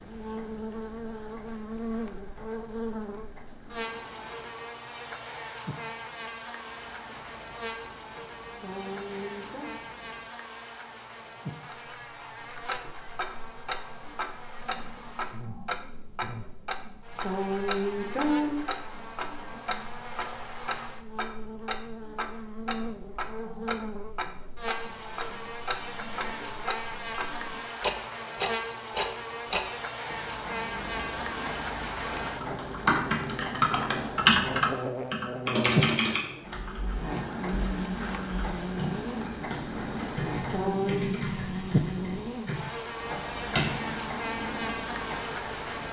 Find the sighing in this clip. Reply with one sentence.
The sighing can be heard from 8.6 to 9.7 s, from 17.2 to 18.6 s and from 40.5 to 41.1 s.